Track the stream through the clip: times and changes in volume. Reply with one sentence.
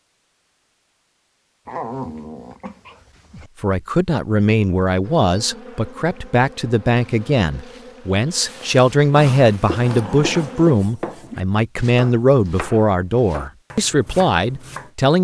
The stream can't be heard in this clip.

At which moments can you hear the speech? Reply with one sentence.
You can hear the speech from 3.6 to 15.1 s.